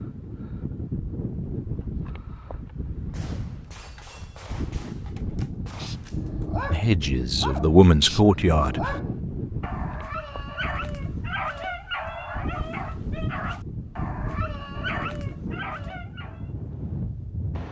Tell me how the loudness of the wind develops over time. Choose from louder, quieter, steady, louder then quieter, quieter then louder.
steady.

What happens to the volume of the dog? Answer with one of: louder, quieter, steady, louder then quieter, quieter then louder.
steady.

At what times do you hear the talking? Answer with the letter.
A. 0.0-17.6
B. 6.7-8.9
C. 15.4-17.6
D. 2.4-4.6
B.